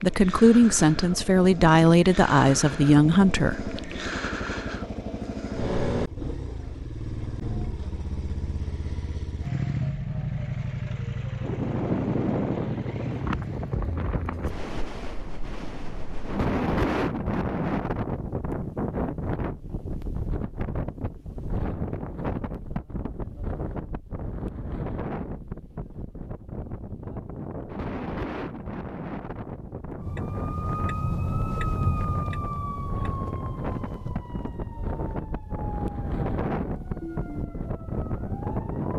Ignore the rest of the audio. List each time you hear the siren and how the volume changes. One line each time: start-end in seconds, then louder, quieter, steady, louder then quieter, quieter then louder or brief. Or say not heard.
30.0-38.9 quieter.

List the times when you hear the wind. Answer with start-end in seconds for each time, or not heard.
11.4-38.9.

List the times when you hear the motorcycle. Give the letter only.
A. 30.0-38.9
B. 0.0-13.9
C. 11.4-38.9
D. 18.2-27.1
B.